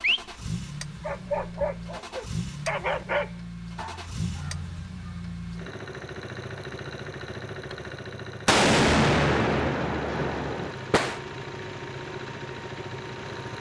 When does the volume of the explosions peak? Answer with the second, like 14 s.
9 s.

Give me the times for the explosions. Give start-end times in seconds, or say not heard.
8.4-11.2.